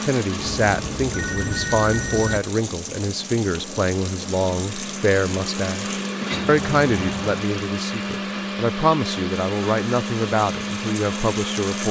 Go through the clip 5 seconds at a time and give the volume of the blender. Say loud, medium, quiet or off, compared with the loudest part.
medium, loud, loud.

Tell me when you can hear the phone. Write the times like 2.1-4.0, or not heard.
0.3-2.4, 6.3-7.4.